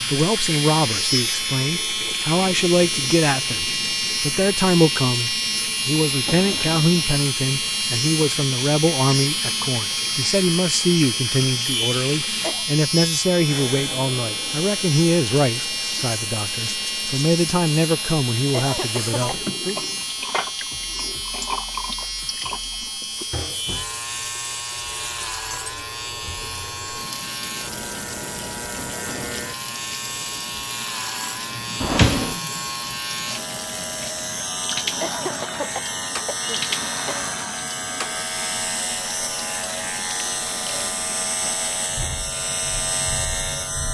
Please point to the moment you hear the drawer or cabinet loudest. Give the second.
32 s.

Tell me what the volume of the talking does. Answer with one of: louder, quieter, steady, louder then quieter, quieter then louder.
steady.